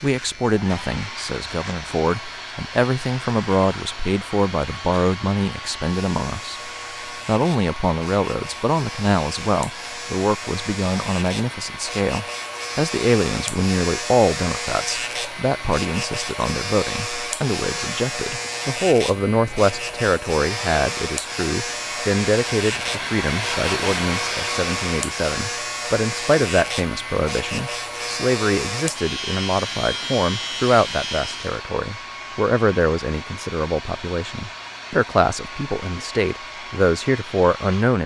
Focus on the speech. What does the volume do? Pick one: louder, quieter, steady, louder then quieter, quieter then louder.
steady.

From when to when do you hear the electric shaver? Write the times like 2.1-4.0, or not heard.
0.0-31.7.